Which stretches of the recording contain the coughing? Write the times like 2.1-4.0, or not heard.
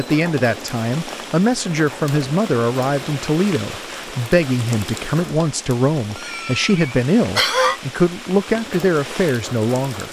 6.2-7.8.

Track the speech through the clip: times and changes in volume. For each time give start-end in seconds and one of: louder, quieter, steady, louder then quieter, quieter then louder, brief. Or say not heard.
0.0-10.0 steady.